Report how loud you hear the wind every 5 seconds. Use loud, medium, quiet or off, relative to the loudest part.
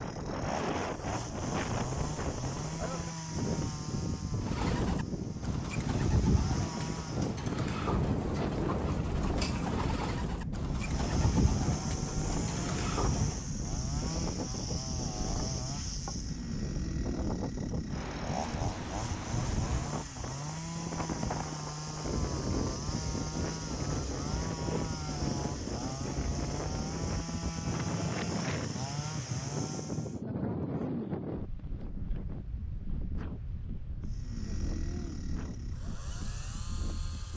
loud, loud, loud, loud, loud, loud, loud, medium.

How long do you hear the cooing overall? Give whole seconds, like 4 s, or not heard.
9 s.